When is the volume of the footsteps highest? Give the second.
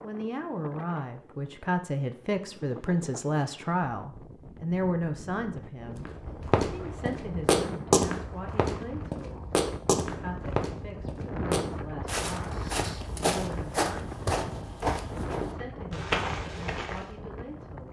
8 s.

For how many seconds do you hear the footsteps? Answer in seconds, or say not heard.
11 s.